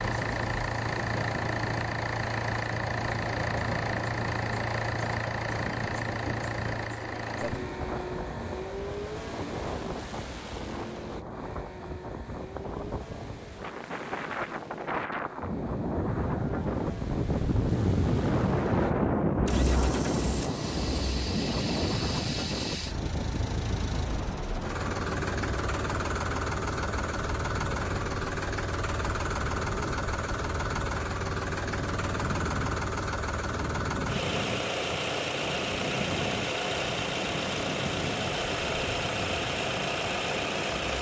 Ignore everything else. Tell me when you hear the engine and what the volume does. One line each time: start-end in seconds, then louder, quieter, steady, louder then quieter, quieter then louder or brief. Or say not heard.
0.0-40.9 quieter then louder.